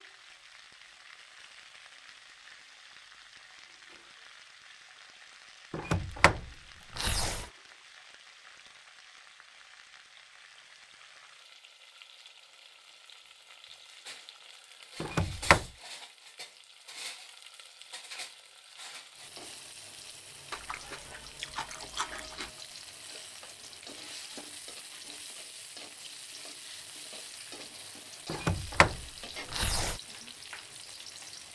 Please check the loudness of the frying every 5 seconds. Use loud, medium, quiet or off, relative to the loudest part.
medium, medium, medium, loud, loud, loud, loud.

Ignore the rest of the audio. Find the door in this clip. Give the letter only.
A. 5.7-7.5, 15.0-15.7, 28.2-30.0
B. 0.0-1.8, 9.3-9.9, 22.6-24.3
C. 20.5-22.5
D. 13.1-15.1
A.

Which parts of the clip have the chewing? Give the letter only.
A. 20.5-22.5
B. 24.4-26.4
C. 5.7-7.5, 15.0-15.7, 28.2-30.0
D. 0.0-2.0
A.